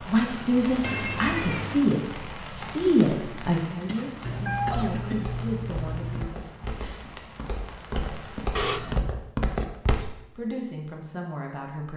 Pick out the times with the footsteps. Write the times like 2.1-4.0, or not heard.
4.7-10.1.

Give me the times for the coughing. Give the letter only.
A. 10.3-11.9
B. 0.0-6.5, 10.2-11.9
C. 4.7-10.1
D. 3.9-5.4
D.